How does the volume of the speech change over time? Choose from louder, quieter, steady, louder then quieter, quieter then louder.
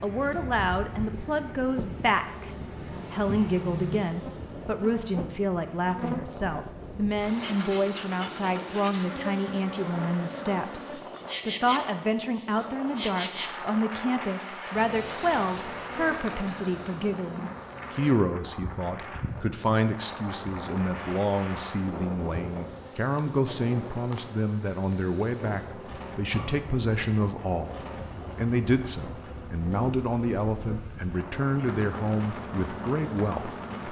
steady.